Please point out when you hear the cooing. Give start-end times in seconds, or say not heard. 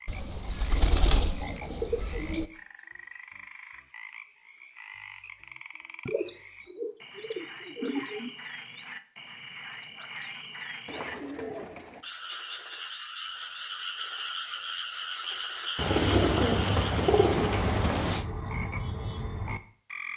0.1-2.5, 6.0-8.3, 10.8-12.0, 15.8-18.2.